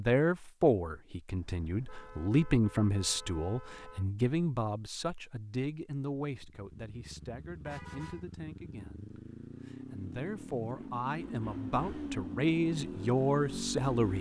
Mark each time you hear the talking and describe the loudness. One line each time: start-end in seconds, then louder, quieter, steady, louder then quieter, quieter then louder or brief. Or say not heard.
0.0-14.1 quieter then louder.